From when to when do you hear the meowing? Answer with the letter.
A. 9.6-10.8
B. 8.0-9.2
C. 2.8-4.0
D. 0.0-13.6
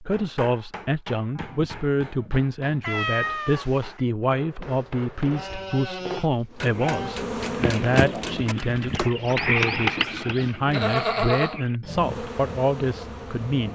C.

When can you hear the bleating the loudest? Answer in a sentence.
The loudest moment of the bleating is at 11 seconds.